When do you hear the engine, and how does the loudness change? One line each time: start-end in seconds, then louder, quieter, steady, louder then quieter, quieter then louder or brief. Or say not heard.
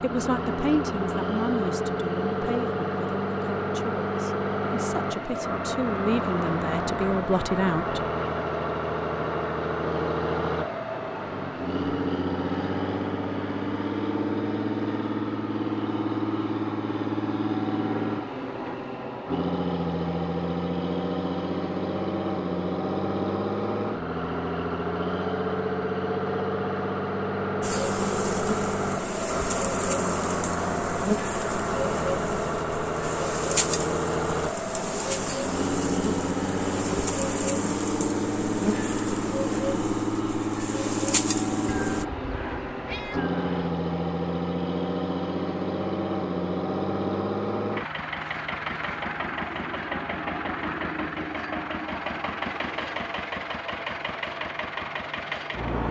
0.0-55.8 steady.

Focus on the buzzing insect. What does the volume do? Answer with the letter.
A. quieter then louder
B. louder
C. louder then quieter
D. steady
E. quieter
D.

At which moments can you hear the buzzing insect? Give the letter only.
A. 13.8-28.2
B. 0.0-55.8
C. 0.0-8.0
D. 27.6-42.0
D.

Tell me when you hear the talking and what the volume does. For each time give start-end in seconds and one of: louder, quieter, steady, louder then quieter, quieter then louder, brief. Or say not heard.
0.0-8.0 quieter then louder.